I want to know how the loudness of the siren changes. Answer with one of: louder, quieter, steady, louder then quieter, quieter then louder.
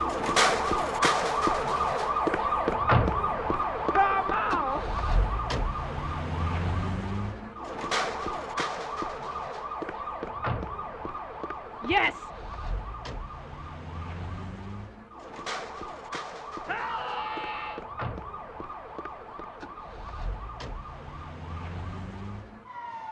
quieter.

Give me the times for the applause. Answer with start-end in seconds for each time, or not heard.
not heard.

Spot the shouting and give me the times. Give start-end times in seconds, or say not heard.
3.9-4.8, 11.8-12.3, 16.6-17.8.